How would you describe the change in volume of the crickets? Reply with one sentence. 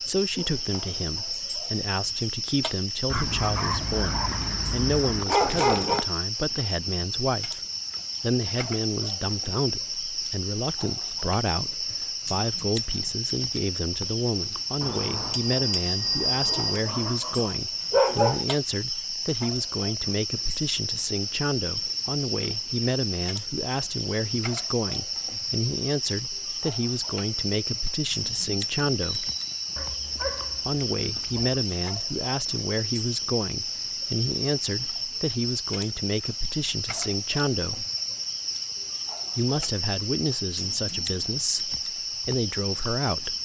The volume of the crickets stays about the same.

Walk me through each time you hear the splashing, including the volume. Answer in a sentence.
The splashing can't be heard in this clip.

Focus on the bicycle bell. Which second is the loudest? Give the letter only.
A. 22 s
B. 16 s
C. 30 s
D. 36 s
B.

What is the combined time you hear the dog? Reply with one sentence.
You can hear the dog for 7 seconds altogether.